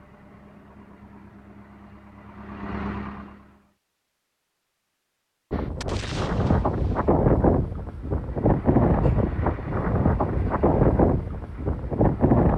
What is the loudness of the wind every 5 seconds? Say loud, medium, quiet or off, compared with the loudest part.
off, loud, loud.